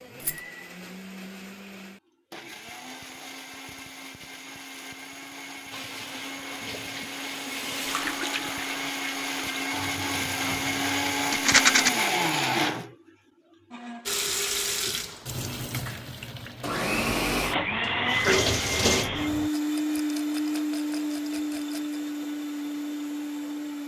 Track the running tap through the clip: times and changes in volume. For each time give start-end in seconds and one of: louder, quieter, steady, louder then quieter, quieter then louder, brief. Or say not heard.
5.7-11.3 louder then quieter
14.1-19.5 quieter then louder.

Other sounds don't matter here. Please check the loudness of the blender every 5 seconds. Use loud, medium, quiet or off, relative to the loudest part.
quiet, medium, loud, loud, loud.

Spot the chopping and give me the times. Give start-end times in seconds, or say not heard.
not heard.